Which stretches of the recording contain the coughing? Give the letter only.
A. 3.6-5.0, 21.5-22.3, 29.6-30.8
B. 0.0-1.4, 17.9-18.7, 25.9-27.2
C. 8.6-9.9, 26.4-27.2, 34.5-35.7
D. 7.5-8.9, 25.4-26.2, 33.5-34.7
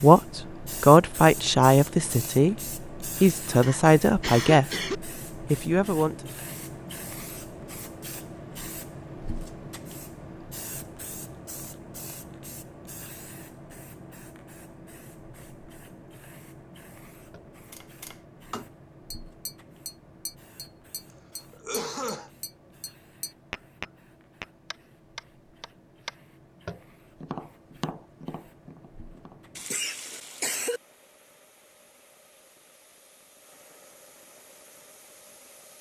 A.